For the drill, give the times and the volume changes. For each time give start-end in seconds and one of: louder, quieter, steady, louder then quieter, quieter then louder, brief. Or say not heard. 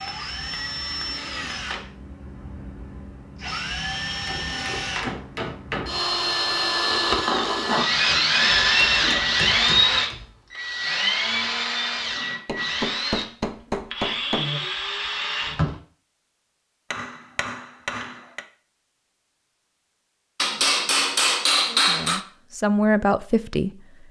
0.0-15.8 louder then quieter.